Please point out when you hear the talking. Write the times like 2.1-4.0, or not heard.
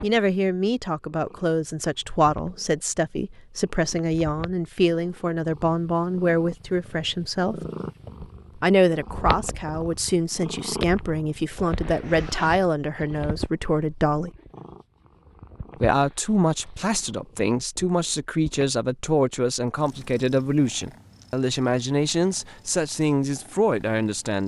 0.0-7.6, 8.6-14.3, 15.8-24.4.